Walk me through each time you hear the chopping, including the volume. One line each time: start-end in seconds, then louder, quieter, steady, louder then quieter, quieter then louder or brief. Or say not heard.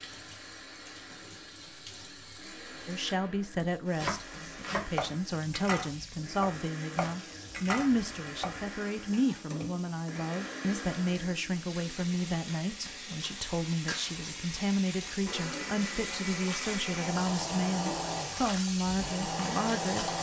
4.0-9.3 quieter.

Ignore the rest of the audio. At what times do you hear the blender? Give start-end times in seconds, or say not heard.
0.0-20.1.